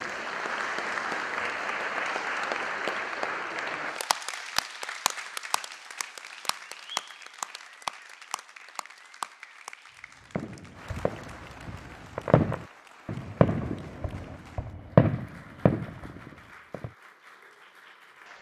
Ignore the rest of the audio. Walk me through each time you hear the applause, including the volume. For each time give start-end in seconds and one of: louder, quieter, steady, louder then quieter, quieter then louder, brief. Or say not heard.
0.0-18.3 quieter.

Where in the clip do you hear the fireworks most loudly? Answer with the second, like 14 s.
15 s.